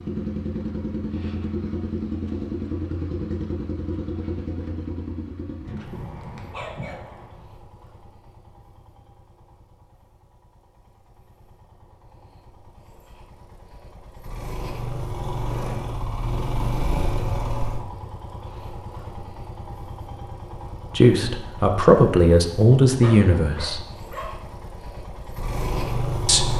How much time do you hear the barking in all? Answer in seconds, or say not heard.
3 s.